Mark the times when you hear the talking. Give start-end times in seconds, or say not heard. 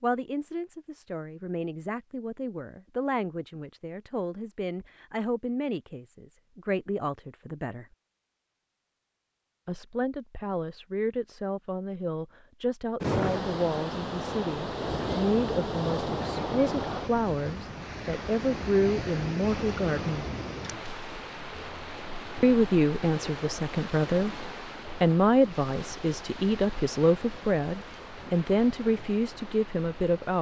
0.0-7.8, 9.7-20.2, 22.4-30.3.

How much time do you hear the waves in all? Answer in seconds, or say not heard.
17 s.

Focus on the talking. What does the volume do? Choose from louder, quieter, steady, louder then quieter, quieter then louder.
louder.